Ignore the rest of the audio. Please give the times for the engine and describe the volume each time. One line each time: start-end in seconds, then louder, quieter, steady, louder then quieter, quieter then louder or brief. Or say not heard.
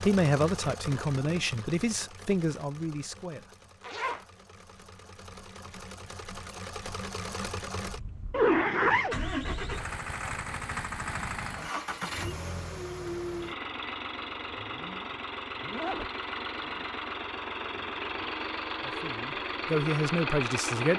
0.0-20.9 louder.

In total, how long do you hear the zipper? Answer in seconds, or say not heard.
4 s.